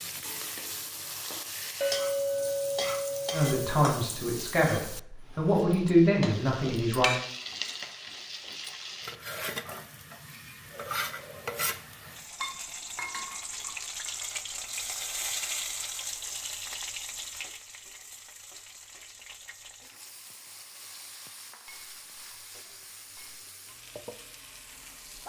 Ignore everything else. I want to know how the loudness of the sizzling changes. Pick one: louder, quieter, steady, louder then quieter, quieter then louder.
quieter.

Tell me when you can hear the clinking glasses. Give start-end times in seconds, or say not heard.
1.8-3.8, 12.4-13.7, 21.6-23.4.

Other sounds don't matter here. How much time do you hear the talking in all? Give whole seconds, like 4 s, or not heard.
4 s.